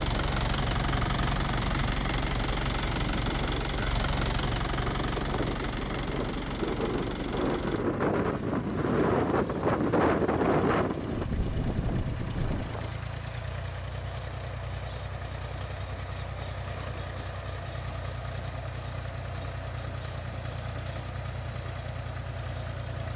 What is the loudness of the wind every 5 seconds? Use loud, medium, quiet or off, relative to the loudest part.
medium, loud, loud, off, off.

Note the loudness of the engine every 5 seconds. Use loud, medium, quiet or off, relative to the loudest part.
loud, medium, medium, medium, medium.